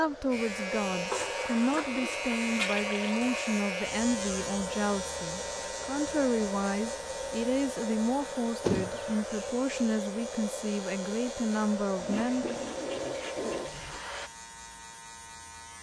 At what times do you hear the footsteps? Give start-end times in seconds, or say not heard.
not heard.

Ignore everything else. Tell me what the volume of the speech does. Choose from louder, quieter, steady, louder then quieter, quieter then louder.
steady.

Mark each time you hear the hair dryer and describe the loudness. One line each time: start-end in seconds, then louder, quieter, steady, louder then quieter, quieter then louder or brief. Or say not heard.
0.0-14.3 steady.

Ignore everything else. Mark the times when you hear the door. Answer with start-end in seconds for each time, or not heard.
8.6-9.4.